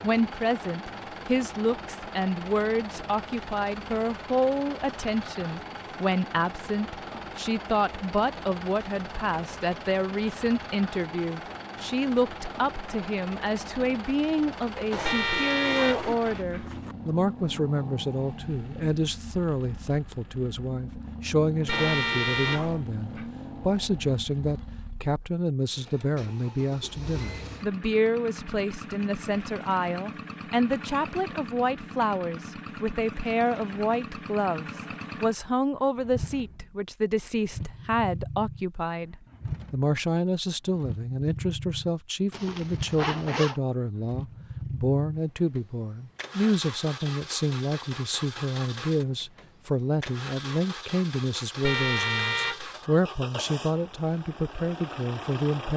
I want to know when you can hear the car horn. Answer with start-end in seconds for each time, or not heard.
15.0-16.7, 21.6-23.3, 51.6-52.7.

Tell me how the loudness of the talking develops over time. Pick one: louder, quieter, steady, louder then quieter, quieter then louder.
steady.